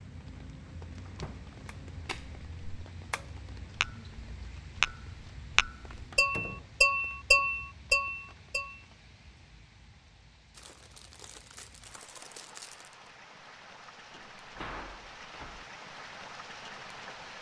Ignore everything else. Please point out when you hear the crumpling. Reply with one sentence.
You can hear the crumpling from 10.5 to 13.1 s.